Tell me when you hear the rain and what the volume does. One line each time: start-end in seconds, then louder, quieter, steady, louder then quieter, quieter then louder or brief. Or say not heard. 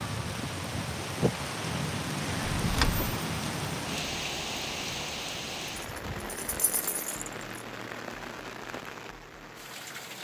0.0-10.1 quieter.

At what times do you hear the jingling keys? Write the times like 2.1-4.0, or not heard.
2.5-3.1, 5.8-7.7.